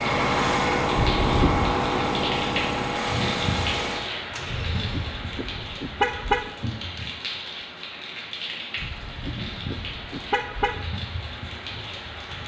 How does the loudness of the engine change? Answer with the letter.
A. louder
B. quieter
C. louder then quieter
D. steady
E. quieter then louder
B.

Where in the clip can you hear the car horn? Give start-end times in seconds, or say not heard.
0.9-1.7, 4.7-6.5, 8.8-10.8.